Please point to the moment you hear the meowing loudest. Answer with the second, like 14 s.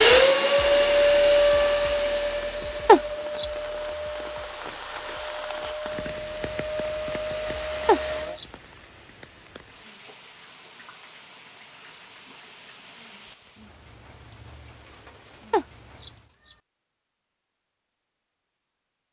3 s.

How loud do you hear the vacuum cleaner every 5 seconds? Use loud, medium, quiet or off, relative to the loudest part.
loud, medium, off, off.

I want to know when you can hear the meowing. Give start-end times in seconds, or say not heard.
2.9-3.5, 7.8-8.4, 15.5-16.1.